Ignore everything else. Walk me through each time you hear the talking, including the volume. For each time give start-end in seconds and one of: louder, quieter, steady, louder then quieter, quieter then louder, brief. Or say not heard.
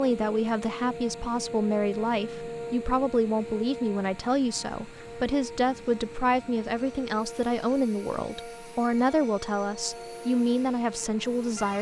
0.0-11.7 steady.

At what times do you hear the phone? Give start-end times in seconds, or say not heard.
not heard.